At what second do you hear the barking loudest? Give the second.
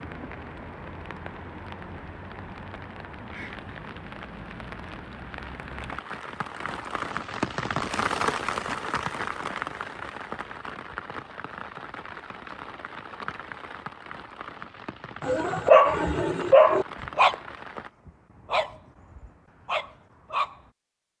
16 s.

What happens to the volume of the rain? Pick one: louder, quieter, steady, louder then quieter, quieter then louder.
louder then quieter.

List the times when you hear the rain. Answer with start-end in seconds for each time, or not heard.
0.0-17.9.